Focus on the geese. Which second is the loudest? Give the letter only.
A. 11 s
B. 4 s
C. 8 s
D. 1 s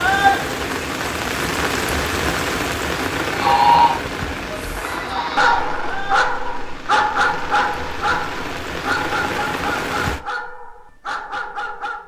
B.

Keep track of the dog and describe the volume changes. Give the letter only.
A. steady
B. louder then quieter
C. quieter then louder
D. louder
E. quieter
E.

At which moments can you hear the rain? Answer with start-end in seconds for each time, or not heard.
0.0-10.2.